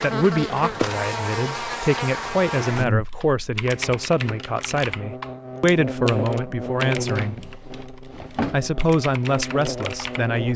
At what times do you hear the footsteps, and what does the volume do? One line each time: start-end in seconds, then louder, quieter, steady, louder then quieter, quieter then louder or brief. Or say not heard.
not heard.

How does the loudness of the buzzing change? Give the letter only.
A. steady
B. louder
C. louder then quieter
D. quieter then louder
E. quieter
E.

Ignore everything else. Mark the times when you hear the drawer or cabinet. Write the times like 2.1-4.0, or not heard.
7.2-8.8.